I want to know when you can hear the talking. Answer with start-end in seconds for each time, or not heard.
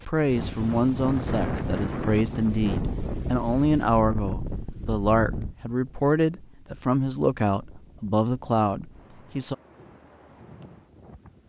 0.1-9.6.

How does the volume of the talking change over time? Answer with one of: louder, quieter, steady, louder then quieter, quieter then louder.
steady.